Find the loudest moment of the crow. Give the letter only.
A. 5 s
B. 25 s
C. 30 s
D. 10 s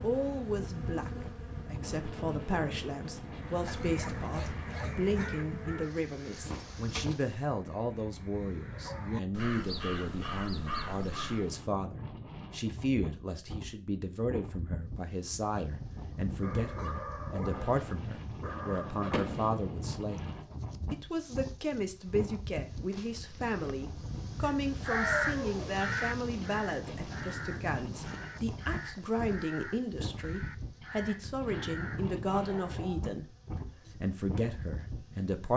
B.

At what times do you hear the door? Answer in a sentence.
The door can be heard from 6.5 to 7.2 s and from 19.1 to 19.9 s.